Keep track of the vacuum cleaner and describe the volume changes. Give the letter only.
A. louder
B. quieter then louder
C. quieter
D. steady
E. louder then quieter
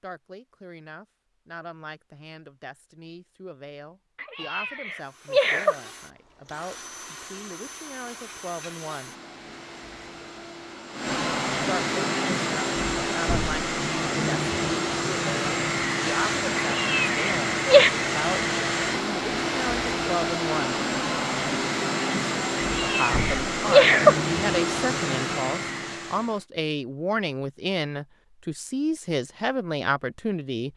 A.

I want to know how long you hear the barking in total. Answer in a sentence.
You can't hear the barking here.